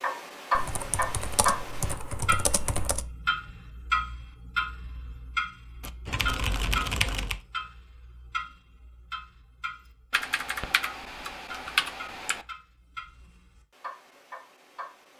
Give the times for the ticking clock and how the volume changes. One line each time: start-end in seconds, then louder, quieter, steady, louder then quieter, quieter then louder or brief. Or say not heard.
0.0-15.1 quieter.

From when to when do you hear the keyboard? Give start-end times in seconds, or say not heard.
0.6-3.0, 5.8-7.4, 10.1-12.4.